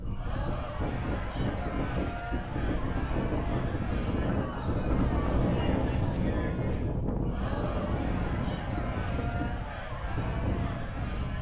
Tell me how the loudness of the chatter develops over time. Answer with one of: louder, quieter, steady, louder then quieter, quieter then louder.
steady.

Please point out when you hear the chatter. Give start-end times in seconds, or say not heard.
0.0-11.3.